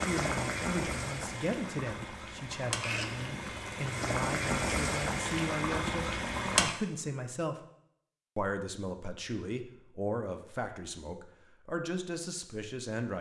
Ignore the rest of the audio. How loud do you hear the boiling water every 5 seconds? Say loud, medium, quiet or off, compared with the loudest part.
loud, loud, off.